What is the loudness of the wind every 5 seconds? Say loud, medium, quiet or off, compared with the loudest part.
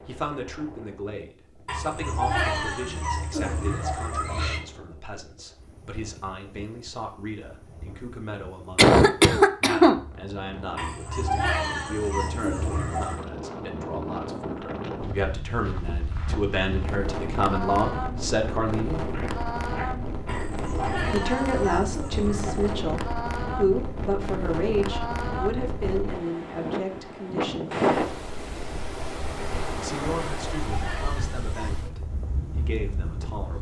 quiet, quiet, medium, loud, loud, loud, medium.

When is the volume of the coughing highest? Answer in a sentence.
The volume of the coughing peaks at 9 seconds.